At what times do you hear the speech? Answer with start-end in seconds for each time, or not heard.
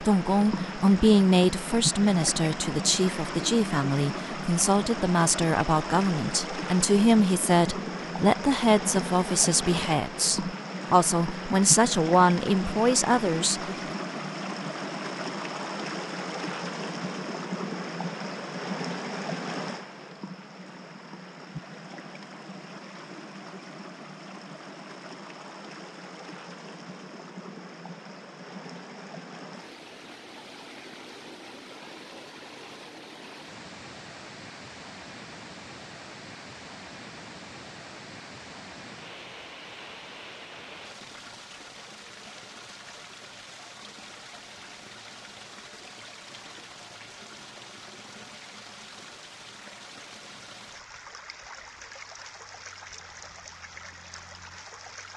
0.0-13.7.